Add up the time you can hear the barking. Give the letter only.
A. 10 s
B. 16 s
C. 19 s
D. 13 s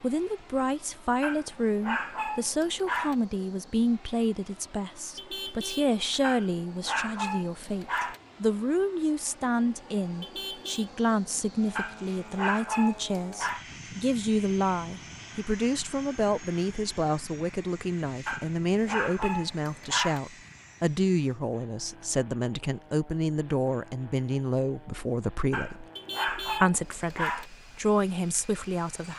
A.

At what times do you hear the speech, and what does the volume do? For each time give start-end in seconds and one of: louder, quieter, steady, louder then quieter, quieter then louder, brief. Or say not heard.
0.0-29.1 steady.